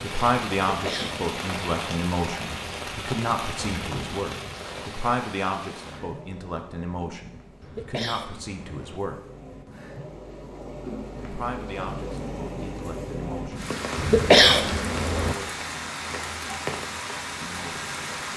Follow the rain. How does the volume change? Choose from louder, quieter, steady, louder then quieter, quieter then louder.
quieter then louder.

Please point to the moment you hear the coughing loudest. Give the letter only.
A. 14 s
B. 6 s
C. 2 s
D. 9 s
A.